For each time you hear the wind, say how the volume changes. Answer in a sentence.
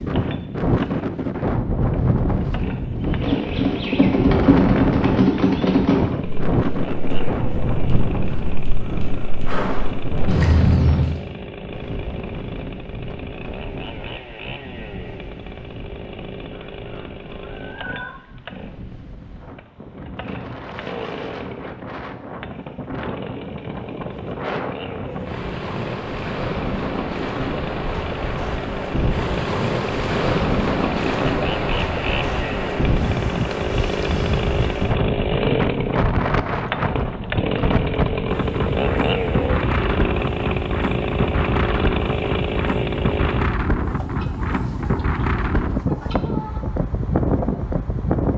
You can hear the wind from 0.0 to 48.3 s, getting quieter then louder.